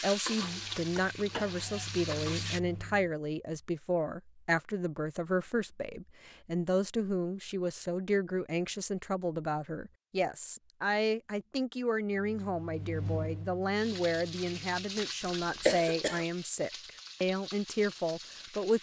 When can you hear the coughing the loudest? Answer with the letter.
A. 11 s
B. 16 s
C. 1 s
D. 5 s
B.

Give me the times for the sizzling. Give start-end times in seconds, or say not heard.
0.0-2.6, 13.8-18.7.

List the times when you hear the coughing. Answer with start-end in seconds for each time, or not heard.
0.4-1.9, 15.2-16.2.